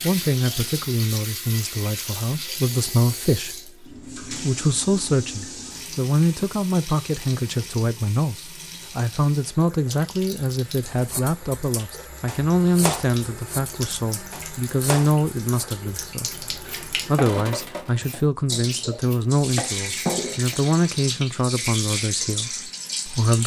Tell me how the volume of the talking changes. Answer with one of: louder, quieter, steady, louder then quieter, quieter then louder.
steady.